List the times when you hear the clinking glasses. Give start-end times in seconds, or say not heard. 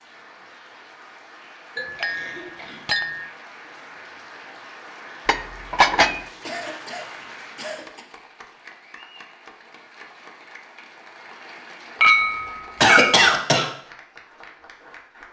1.8-3.3, 5.2-6.2, 12.0-13.2.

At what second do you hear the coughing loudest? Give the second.
13 s.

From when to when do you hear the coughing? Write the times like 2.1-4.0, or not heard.
1.8-3.0, 6.4-8.1, 12.8-13.7.